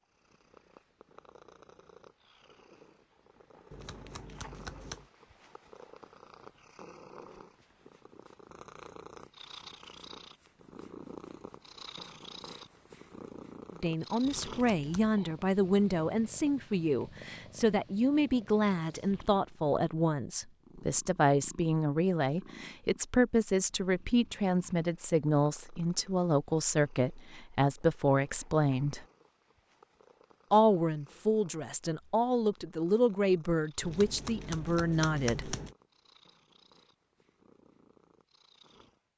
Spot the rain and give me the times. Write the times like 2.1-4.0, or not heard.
not heard.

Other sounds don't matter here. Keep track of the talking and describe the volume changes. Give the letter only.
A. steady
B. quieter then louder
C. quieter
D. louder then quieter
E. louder
A.